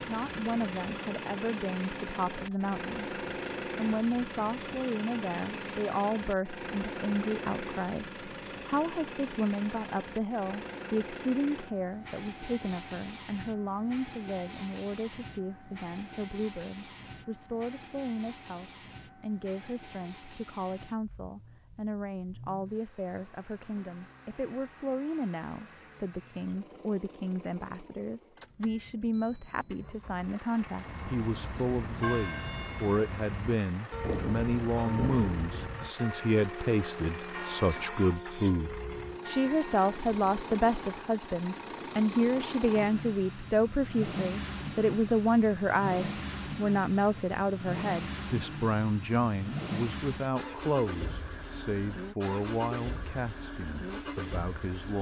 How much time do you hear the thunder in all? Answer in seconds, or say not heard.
2 s.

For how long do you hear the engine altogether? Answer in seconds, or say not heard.
55 s.